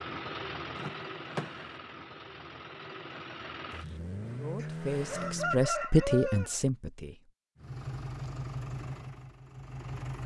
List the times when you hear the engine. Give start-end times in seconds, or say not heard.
0.0-5.7, 7.5-10.2.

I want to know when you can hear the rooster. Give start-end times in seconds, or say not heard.
4.6-6.5.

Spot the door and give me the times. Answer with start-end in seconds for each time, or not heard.
0.8-1.8.